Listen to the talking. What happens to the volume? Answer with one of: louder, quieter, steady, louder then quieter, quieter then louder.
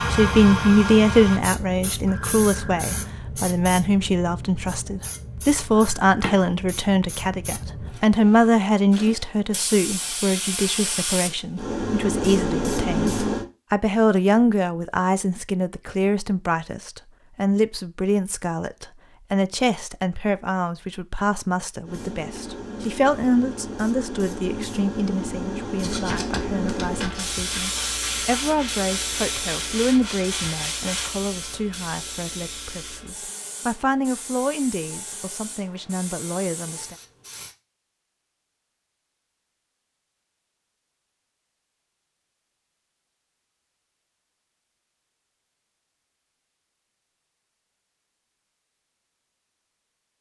quieter.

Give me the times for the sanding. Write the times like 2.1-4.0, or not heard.
25.8-31.1.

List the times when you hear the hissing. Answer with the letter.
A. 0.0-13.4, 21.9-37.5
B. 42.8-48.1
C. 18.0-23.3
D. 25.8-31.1
A.